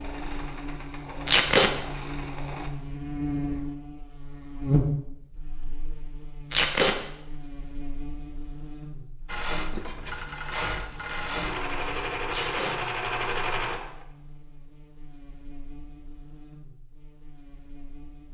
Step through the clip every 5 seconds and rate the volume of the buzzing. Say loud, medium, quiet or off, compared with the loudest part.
loud, quiet, quiet, quiet.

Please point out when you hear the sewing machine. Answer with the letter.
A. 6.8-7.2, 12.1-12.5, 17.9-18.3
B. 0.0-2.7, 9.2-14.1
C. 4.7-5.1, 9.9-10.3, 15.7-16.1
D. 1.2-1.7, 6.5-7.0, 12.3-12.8
B.